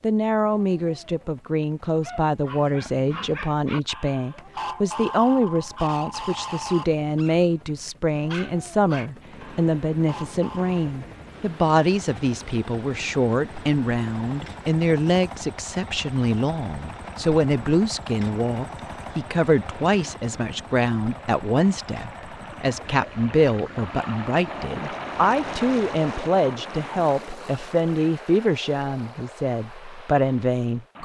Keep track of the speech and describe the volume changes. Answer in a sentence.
The loudness of the speech stays about the same.